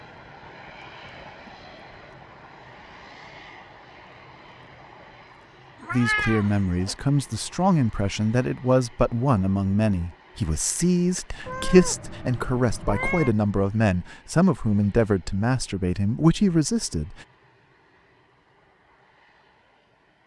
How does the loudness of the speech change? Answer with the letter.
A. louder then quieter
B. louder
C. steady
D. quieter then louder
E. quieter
C.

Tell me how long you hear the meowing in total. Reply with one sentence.
You can hear the meowing for 3 seconds altogether.